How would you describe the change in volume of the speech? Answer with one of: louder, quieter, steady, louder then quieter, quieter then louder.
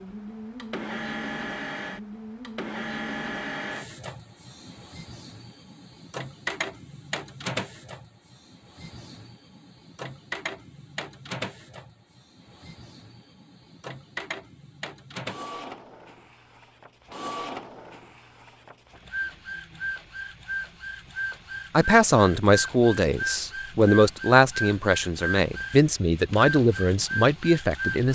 steady.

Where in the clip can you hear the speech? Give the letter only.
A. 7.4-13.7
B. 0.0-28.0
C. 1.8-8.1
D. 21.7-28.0
D.